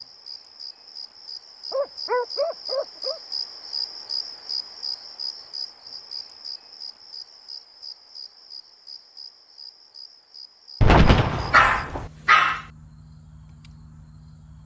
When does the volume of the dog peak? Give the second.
12 s.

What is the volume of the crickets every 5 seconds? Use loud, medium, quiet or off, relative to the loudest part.
loud, medium, quiet.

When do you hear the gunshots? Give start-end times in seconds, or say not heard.
10.8-12.1.